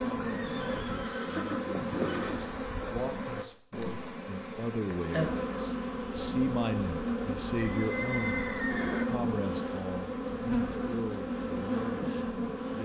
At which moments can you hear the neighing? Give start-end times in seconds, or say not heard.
0.3-3.0, 7.5-9.1.